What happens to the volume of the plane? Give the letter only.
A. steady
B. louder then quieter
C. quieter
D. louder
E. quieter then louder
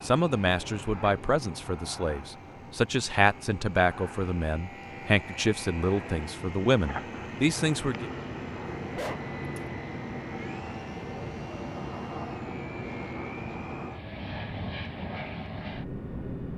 D.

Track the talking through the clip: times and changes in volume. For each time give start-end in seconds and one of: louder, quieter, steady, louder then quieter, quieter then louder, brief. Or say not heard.
0.0-8.1 steady.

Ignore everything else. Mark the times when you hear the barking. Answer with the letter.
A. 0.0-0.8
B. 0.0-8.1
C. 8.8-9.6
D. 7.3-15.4
C.